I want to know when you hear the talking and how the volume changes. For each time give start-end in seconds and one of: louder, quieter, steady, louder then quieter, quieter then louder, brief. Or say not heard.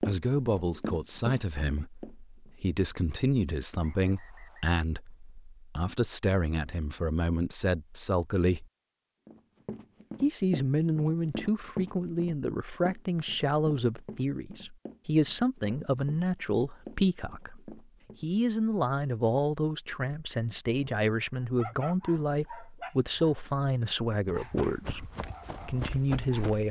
0.0-8.7 steady
10.2-26.6 steady.